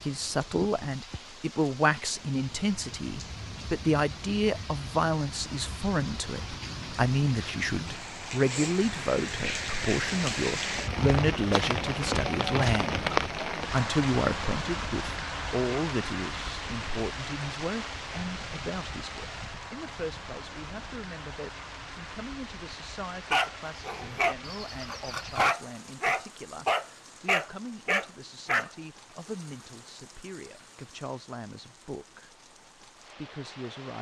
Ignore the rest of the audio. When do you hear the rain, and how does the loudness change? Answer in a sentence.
You can hear the rain from 0.0 to 33.9 s, getting louder then quieter.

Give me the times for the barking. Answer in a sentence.
The barking can be heard from 23.3 to 28.7 s.